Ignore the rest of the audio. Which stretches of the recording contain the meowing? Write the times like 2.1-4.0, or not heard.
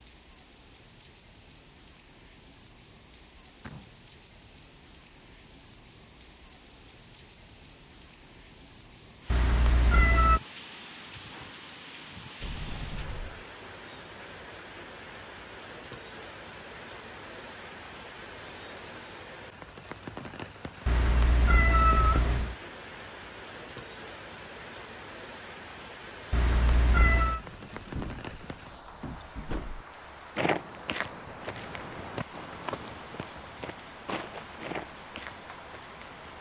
9.3-10.4, 20.9-22.6, 26.3-27.4.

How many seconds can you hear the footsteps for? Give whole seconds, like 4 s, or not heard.
6 s.